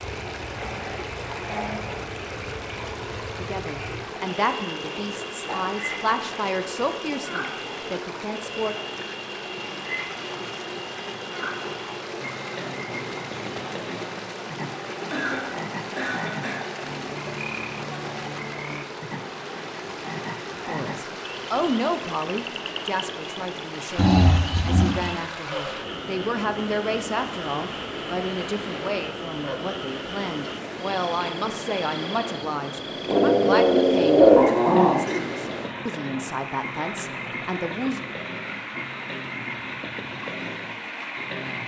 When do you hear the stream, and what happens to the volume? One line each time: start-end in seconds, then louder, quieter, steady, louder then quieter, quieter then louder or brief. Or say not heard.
0.0-41.6 steady.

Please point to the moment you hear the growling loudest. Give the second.
34 s.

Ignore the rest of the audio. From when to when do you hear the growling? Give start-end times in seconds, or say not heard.
0.6-1.9, 23.9-24.9, 33.0-35.0.